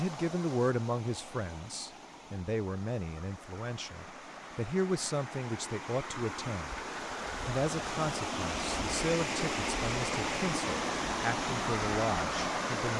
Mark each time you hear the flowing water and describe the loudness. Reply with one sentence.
The flowing water can be heard from 0.0 to 12.9 s, getting louder.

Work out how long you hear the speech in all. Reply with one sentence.
The speech can be heard for 12 seconds in total.